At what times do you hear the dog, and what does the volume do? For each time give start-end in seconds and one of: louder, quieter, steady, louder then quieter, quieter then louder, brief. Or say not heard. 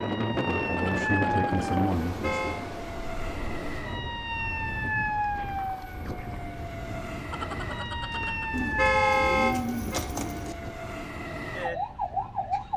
not heard.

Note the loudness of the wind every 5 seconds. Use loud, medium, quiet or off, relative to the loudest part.
loud, medium, quiet.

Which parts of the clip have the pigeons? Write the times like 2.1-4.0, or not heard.
8.5-10.6.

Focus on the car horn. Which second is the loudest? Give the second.
9 s.